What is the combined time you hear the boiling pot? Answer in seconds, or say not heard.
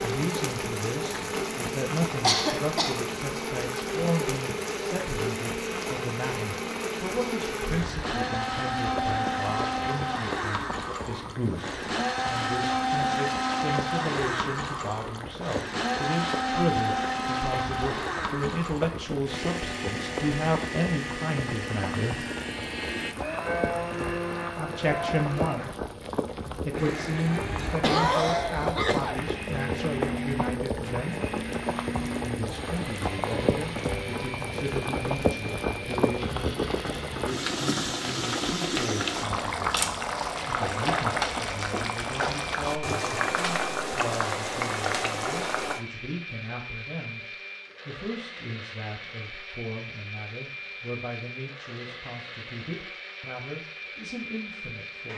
46 s.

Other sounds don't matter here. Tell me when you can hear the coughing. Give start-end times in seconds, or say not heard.
2.2-3.0, 27.8-29.2.